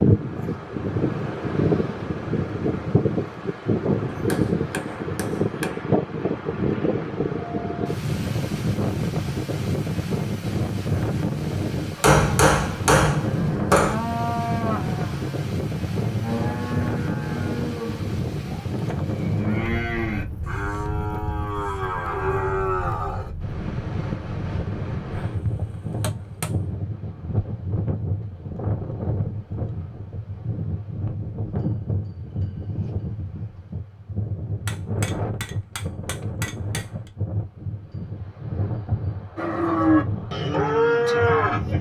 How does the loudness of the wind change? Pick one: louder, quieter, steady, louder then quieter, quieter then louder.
quieter.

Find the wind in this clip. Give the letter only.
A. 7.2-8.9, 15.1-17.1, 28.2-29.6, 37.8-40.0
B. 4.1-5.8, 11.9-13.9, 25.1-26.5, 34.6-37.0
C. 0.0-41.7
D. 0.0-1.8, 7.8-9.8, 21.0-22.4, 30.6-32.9
C.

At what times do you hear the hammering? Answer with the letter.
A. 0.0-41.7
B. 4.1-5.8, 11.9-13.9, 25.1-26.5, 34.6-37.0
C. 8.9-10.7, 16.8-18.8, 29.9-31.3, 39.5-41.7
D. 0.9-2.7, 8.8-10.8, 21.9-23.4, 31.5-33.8
B.